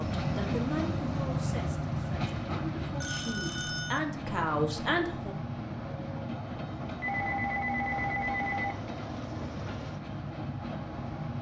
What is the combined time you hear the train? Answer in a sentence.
You can hear the train for 11 seconds altogether.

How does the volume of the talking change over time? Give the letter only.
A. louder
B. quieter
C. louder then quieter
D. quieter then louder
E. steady
D.